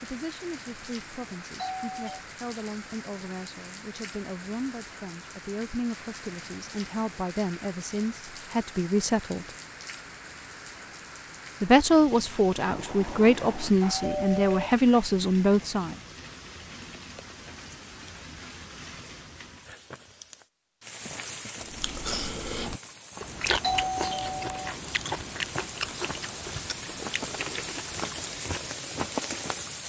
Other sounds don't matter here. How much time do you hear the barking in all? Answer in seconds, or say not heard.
not heard.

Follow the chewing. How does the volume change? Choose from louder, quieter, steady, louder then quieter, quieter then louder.
quieter.